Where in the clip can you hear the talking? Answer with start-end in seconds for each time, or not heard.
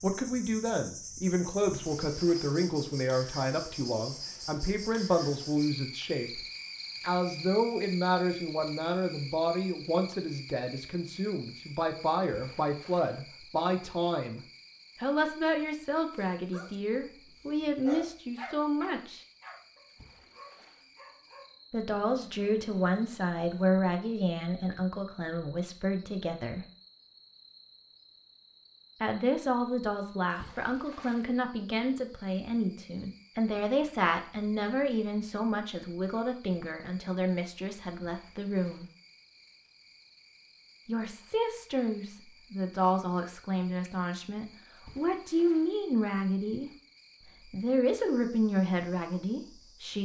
0.0-14.4, 15.0-19.2, 21.7-26.6, 29.0-38.9, 40.9-46.7, 47.5-50.0.